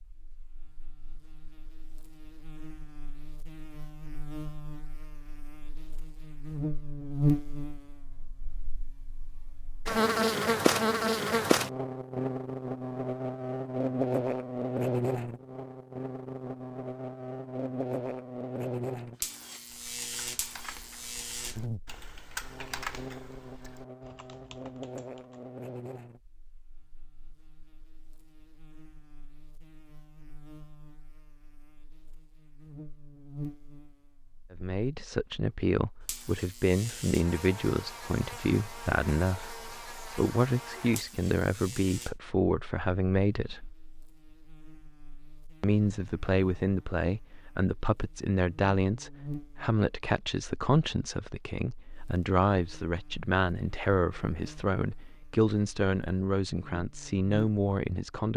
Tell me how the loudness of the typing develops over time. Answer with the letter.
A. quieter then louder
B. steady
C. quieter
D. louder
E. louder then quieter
E.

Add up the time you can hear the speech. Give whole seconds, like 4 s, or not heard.
22 s.